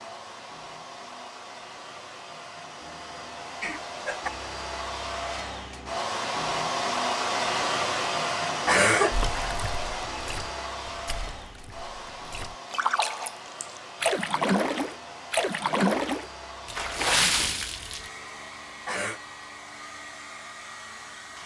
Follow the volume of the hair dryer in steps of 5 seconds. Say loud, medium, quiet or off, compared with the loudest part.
medium, loud, medium, quiet, quiet.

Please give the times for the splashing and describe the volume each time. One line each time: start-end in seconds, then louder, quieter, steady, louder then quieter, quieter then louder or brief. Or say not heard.
9.1-18.1 louder.